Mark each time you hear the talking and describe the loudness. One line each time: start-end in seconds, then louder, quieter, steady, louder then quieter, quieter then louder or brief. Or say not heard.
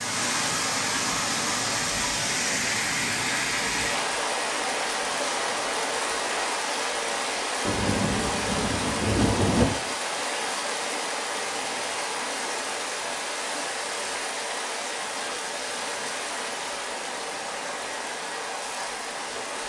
not heard.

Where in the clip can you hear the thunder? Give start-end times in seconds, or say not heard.
7.7-9.7.